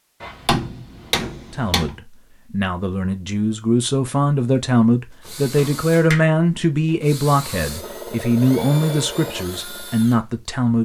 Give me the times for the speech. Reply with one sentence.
You can hear the speech from 1.5 to 10.8 s.